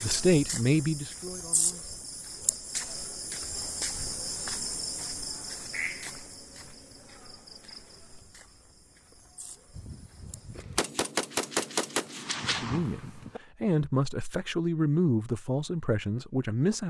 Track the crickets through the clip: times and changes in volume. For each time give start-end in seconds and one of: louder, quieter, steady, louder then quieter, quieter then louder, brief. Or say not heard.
0.0-10.7 quieter.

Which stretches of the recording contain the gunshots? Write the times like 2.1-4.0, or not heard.
9.8-13.4.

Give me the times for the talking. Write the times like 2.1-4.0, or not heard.
0.0-2.0, 12.4-16.8.